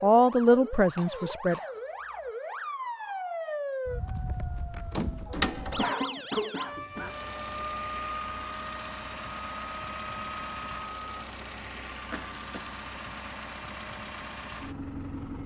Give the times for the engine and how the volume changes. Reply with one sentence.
You can hear the engine from 6.9 to 15.4 s, at a steady volume.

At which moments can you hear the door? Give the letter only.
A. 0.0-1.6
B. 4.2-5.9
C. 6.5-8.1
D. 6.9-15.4
B.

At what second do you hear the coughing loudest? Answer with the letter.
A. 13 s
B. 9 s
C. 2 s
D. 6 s
D.